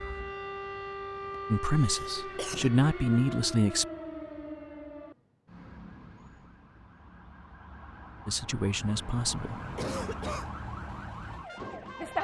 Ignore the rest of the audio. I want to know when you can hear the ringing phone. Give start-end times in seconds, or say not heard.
not heard.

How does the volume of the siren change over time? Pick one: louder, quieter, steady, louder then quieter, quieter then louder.
quieter then louder.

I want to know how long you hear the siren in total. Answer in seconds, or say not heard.
12 s.